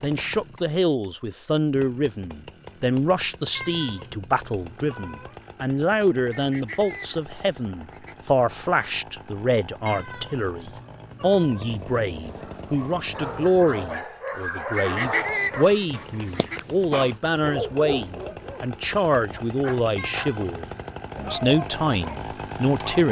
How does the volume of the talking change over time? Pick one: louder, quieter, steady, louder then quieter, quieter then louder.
steady.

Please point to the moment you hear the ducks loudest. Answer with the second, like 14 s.
15 s.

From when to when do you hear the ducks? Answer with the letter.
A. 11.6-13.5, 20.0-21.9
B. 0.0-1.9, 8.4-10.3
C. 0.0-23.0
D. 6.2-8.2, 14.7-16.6
D.